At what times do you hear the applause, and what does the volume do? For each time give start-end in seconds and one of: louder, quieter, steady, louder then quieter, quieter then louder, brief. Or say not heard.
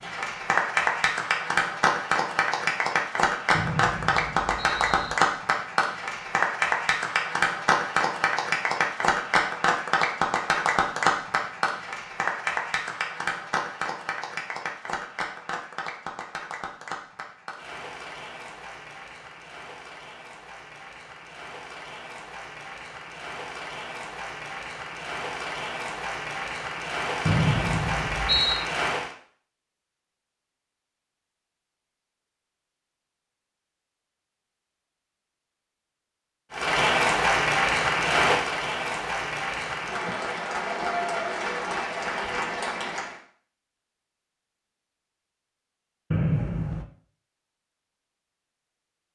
0.0-29.1 quieter then louder
36.5-43.2 quieter.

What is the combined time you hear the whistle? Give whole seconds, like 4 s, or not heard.
4 s.